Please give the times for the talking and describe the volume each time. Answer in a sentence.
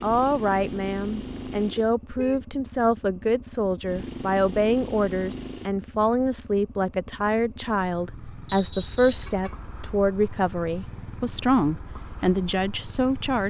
You can hear the talking from 0.0 to 13.4 s, at a steady volume.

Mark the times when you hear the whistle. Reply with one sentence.
You can hear the whistle from 8.4 to 9.3 s.